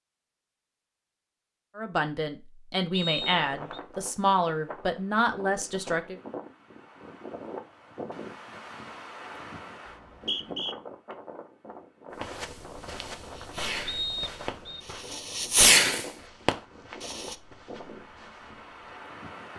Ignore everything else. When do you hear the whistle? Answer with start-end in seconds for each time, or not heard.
2.9-3.8, 9.8-10.8, 13.8-14.8.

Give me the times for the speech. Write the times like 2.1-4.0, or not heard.
1.8-6.2.